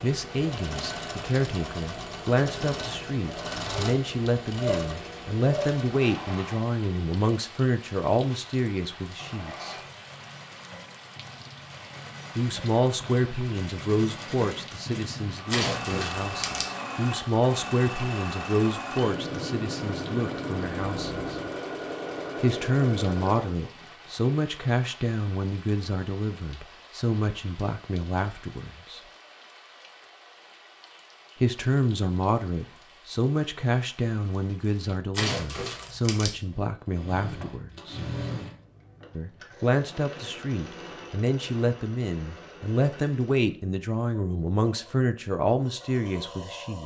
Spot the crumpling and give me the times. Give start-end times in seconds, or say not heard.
15.4-16.7, 35.1-36.3.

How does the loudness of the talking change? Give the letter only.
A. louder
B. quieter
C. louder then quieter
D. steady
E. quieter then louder
D.